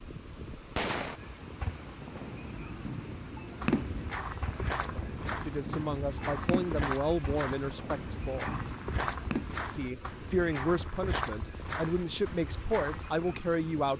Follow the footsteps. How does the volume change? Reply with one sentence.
The volume of the footsteps stays about the same.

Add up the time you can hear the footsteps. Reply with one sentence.
The footsteps can be heard for 10 seconds in total.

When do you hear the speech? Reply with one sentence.
You can hear the speech from 5.5 to 8.5 s and from 9.8 to 13.9 s.